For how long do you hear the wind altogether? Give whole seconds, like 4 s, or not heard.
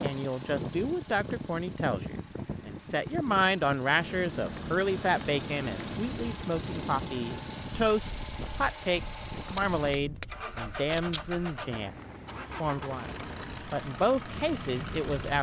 15 s.